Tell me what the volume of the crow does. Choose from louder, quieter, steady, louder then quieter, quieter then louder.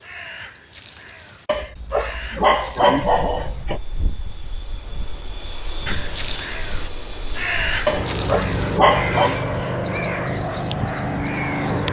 louder.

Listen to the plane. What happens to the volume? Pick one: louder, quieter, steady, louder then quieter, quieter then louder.
louder.